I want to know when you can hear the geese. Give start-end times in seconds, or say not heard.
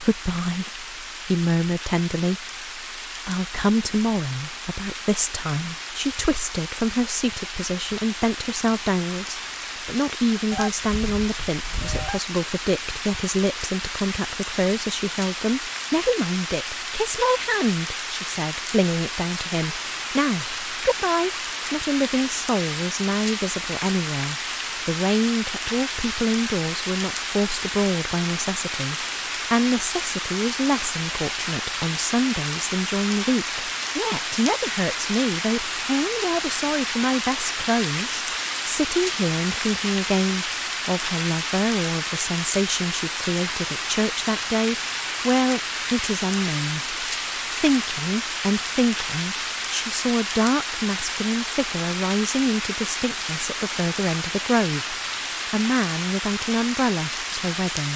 10.5-12.2.